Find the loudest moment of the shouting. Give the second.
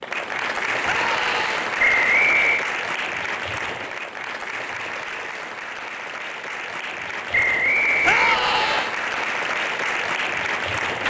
8 s.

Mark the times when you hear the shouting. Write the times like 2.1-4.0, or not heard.
0.8-1.7, 8.0-8.9.